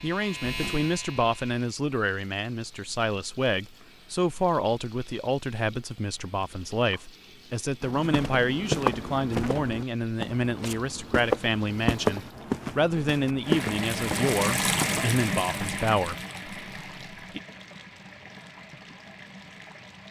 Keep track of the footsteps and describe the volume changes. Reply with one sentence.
The loudness of the footsteps goes down, then up.